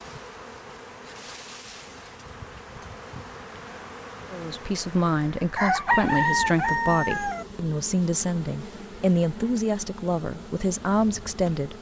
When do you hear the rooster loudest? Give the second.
6 s.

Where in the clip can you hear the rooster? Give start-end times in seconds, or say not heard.
5.5-7.5.